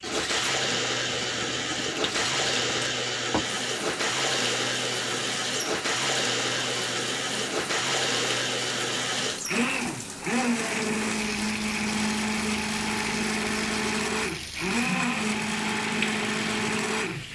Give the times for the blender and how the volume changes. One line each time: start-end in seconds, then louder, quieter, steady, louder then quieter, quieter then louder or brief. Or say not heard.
0.0-17.3 steady.